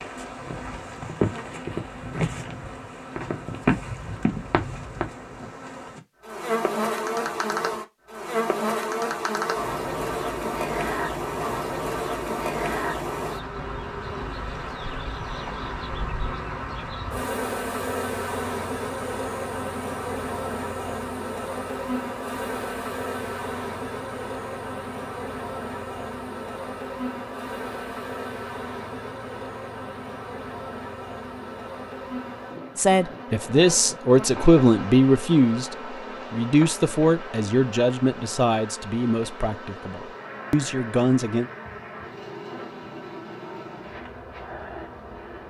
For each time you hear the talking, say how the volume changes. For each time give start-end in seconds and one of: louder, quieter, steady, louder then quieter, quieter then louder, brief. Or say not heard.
32.8-41.5 quieter.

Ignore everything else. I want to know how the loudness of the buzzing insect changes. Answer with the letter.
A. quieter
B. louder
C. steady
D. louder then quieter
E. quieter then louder
A.